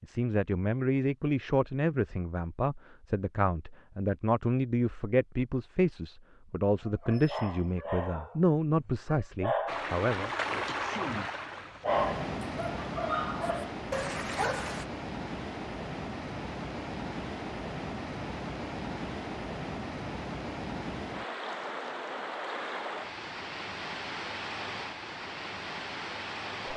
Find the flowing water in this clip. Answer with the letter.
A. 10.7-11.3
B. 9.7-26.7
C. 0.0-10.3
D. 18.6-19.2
B.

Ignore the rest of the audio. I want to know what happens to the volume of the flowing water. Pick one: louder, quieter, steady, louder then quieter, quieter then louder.
steady.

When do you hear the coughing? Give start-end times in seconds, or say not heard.
10.7-11.3.